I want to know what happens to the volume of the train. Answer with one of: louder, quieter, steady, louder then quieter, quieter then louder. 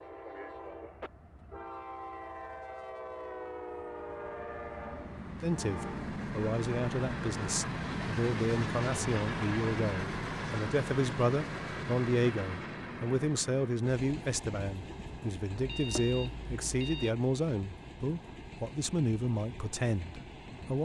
louder then quieter.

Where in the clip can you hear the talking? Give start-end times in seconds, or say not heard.
5.4-20.8.